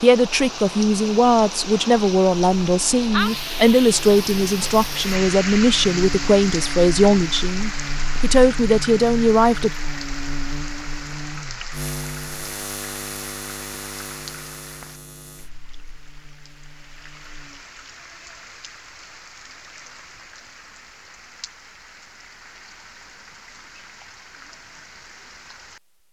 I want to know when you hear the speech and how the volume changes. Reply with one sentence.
You can hear the speech from 0.0 to 9.7 s, at a steady volume.